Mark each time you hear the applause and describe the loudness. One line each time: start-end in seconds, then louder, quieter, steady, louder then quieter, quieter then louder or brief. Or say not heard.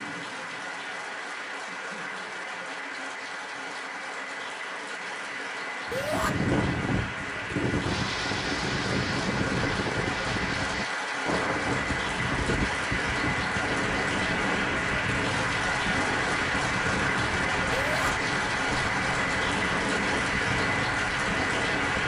0.0-22.0 louder.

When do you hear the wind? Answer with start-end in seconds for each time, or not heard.
5.8-22.0.